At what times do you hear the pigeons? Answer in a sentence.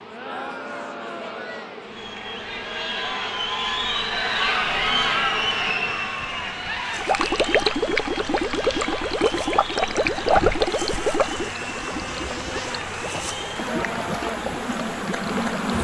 You can't hear the pigeons here.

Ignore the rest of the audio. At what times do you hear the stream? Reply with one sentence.
You can hear the stream from 7.0 to 15.7 s.